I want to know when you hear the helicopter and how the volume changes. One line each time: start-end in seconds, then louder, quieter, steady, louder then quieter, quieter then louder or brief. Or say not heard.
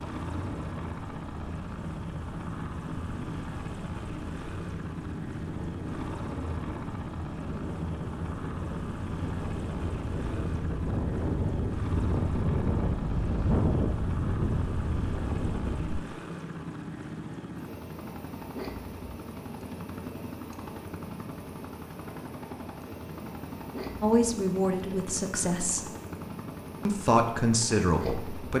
0.0-28.5 steady.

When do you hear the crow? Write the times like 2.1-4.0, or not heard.
not heard.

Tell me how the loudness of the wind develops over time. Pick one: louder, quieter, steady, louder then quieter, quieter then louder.
louder.